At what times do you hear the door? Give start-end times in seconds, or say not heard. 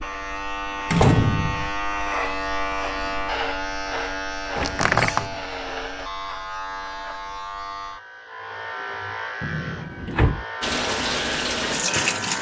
0.9-1.7, 4.5-5.3, 9.4-10.4.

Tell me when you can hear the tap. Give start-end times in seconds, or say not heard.
10.6-12.3.